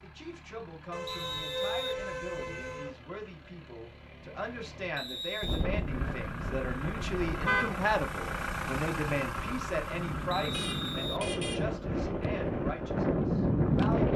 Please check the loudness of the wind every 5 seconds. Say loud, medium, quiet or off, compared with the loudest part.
off, medium, loud.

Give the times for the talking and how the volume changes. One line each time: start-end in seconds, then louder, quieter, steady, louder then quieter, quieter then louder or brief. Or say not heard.
0.0-14.1 louder then quieter.